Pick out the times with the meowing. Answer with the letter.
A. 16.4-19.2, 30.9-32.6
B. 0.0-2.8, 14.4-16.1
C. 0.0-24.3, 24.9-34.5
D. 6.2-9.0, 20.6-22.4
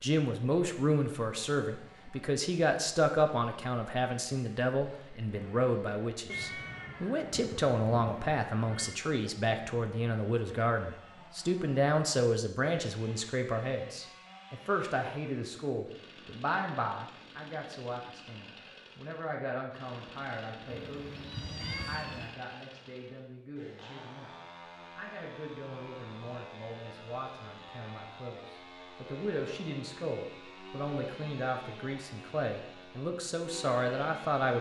D.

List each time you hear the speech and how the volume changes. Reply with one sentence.
The speech can be heard from 0.0 to 24.3 s, getting quieter; and from 24.9 to 34.5 s, getting louder.